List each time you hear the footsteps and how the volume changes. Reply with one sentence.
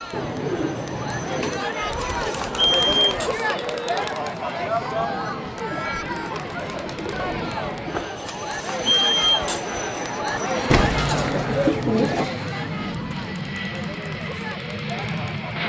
The footsteps can't be heard in this clip.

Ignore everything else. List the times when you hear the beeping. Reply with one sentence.
The beeping can be heard from 1.9 to 3.3 s and from 8.2 to 9.7 s.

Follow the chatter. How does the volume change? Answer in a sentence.
The loudness of the chatter goes down.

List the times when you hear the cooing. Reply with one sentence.
The cooing can be heard from 0.1 to 1.7 s, from 6.0 to 8.2 s and from 10.7 to 12.3 s.